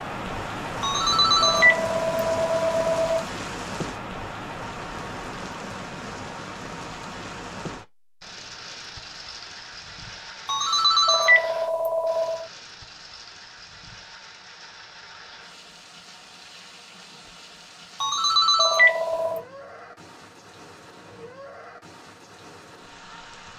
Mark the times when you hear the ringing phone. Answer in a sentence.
The ringing phone can be heard from 0.8 to 3.2 s, from 10.4 to 12.4 s and from 18.0 to 19.4 s.